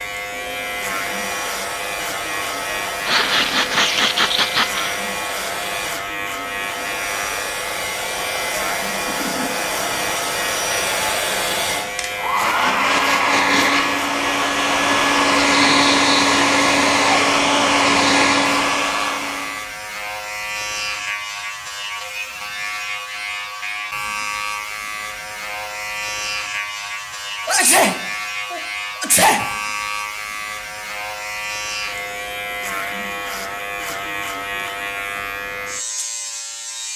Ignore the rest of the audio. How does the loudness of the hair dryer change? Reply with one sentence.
The loudness of the hair dryer goes up.